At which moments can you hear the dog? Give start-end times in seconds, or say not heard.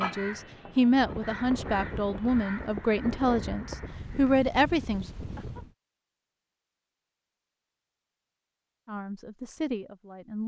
not heard.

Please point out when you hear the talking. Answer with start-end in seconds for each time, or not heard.
0.0-5.0, 8.8-10.4.